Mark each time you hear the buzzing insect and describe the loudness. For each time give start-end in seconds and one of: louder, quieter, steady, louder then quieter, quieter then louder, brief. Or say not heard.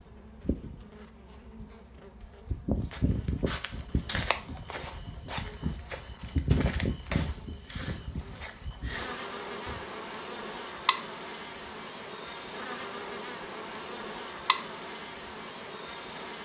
0.0-16.4 steady.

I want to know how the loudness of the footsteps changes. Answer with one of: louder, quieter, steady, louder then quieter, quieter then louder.
quieter.